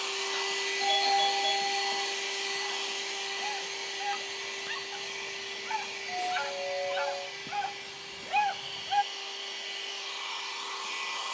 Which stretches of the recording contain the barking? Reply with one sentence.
The barking can be heard from 2.4 to 9.1 s.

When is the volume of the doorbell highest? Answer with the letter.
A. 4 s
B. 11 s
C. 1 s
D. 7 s
C.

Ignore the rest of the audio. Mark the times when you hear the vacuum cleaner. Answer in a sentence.
You can hear the vacuum cleaner from 0.0 to 11.2 s.